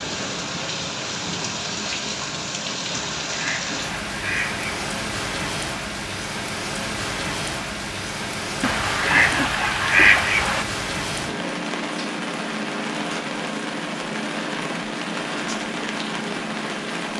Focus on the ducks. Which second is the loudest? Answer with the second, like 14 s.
10 s.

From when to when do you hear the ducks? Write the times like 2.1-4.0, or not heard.
2.9-4.7, 8.6-10.7.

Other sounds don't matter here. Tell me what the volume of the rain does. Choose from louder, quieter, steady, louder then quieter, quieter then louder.
steady.